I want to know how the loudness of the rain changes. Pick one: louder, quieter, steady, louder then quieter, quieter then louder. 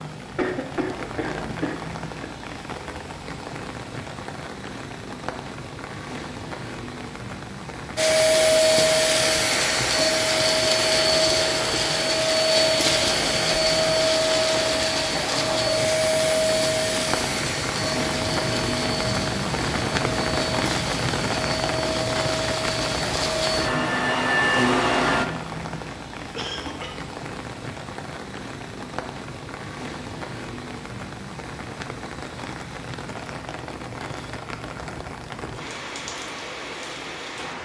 louder then quieter.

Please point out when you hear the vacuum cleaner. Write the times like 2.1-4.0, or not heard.
8.0-25.2.